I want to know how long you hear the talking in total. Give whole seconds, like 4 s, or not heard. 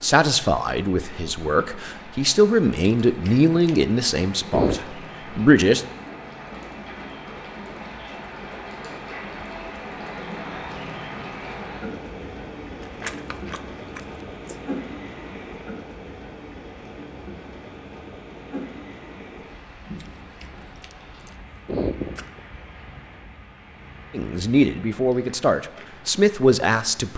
9 s.